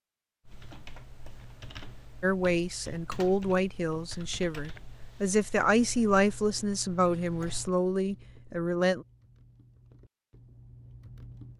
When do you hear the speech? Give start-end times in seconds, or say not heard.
2.2-9.1.